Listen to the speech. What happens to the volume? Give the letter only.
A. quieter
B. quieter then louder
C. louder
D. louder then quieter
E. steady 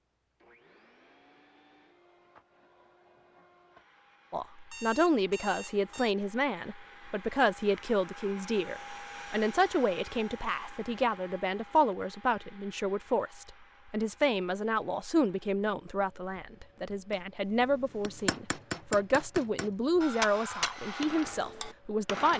E.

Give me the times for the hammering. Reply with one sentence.
You can hear the hammering from 17.1 to 22.3 s.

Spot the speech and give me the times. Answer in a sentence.
The speech can be heard from 4.3 to 22.3 s.